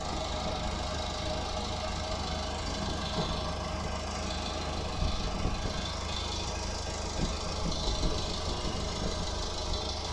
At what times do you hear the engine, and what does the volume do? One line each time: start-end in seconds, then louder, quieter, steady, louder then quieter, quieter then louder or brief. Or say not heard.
0.0-10.0 steady.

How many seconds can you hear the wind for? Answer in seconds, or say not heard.
10 s.